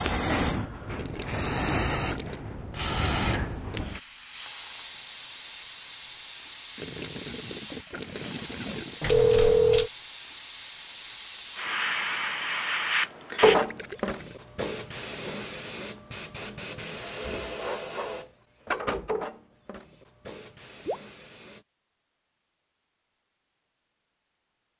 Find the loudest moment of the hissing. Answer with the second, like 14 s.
13 s.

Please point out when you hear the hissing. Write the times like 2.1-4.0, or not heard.
0.0-21.6.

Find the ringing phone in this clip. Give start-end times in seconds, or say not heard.
9.0-9.9.